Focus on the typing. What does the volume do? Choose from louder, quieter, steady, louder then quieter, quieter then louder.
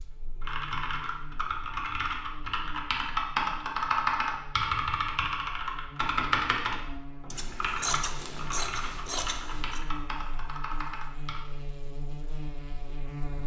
louder then quieter.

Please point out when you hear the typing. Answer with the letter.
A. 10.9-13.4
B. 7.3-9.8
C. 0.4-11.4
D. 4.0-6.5
C.